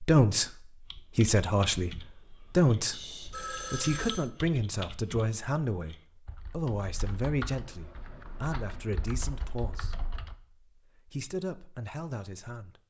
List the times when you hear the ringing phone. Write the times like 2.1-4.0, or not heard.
2.9-4.3.